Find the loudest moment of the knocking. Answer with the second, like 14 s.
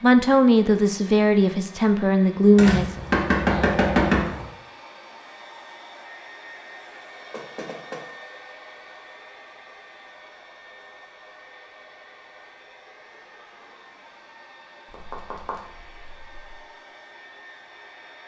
4 s.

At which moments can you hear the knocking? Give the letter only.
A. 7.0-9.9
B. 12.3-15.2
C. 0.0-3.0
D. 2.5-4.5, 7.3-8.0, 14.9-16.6
D.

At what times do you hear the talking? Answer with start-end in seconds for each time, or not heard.
0.0-3.0.